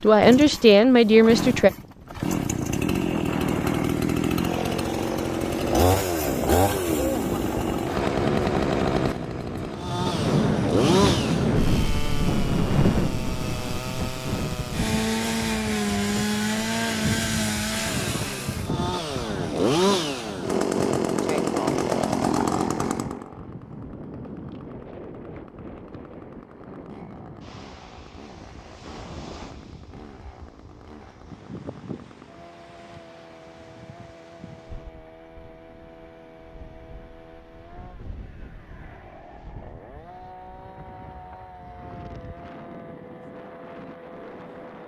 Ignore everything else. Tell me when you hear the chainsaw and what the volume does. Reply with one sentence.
You can hear the chainsaw from 0.0 to 44.8 s, getting quieter.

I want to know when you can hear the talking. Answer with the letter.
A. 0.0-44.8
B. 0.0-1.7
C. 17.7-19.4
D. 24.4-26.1
B.